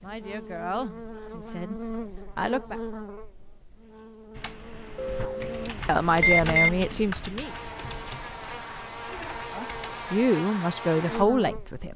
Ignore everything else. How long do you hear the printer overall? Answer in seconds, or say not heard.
not heard.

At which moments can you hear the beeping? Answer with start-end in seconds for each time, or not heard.
5.0-6.7.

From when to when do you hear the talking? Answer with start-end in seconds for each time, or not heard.
0.0-2.8, 5.2-7.5, 9.5-11.9.